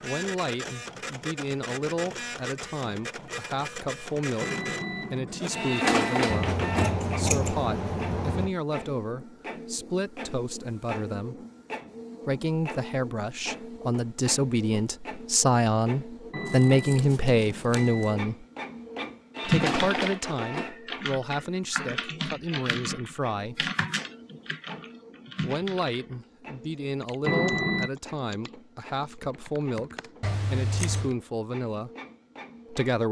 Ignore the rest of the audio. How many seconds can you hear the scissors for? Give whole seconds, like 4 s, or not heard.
5 s.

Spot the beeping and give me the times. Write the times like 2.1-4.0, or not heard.
4.4-6.4, 16.3-18.2, 27.2-27.9.